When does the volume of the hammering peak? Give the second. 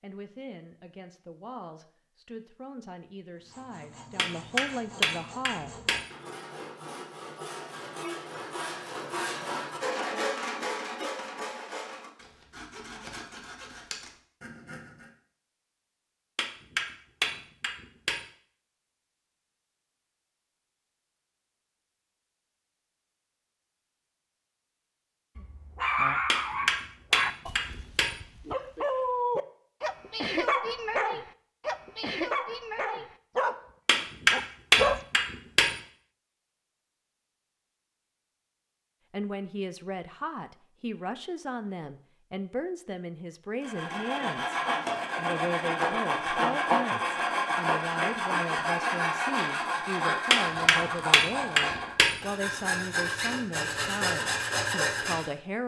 35 s.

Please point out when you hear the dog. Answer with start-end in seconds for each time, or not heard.
25.4-35.0.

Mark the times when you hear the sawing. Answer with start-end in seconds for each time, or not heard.
3.4-15.1, 43.6-55.4.